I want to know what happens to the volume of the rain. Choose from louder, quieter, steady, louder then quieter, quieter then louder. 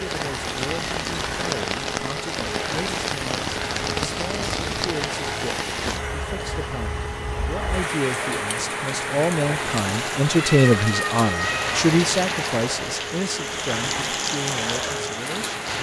steady.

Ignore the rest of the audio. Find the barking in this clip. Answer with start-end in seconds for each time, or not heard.
not heard.